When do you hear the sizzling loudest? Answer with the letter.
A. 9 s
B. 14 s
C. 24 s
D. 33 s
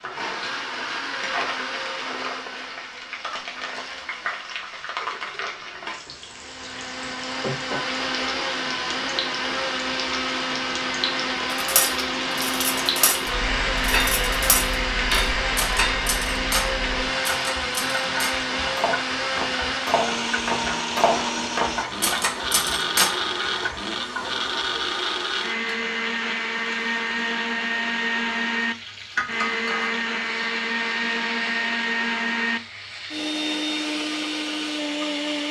B.